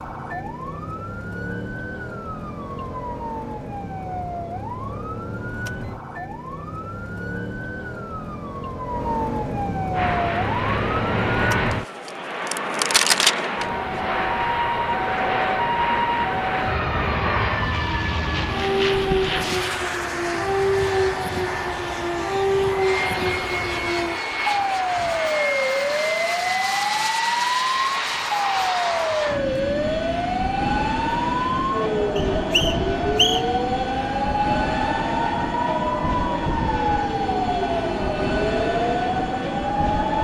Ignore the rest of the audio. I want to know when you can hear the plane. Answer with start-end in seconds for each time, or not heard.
9.9-40.1.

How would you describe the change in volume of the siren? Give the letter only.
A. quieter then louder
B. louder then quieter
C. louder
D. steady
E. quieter
C.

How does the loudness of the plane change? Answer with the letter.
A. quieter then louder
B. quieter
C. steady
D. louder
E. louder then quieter
C.